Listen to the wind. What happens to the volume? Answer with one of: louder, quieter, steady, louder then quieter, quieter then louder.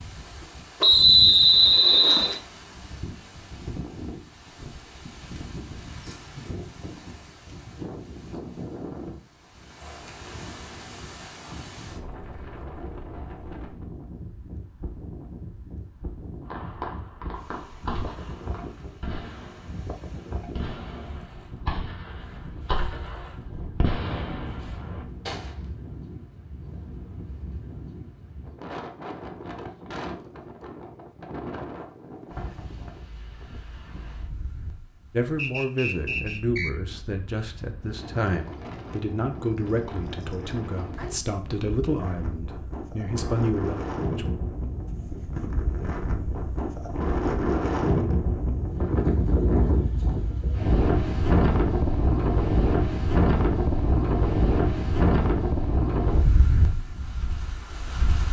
louder.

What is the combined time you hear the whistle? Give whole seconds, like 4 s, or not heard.
3 s.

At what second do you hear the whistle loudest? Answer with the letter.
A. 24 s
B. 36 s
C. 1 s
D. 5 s
C.